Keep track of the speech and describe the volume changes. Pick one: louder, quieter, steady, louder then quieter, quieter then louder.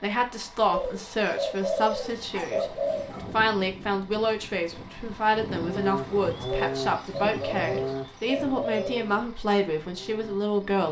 steady.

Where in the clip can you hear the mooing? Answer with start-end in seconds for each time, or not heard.
5.5-10.8.